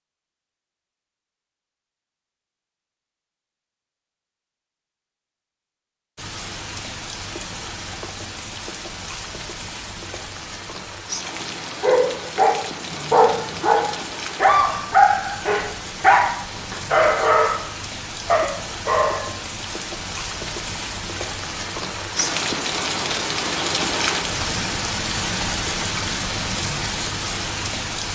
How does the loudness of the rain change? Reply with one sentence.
The volume of the rain goes up.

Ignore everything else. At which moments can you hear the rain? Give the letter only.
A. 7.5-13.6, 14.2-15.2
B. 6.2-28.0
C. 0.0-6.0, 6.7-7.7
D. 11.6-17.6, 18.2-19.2
B.